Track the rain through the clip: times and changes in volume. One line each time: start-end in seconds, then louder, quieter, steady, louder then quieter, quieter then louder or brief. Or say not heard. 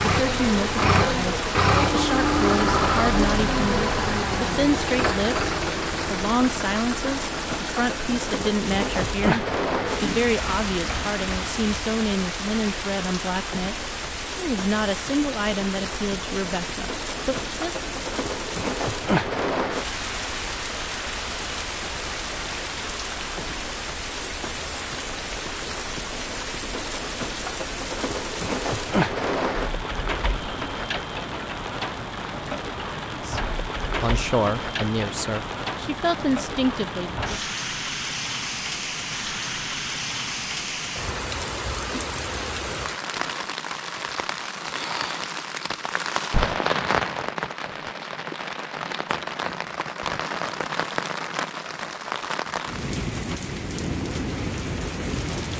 0.0-55.5 steady.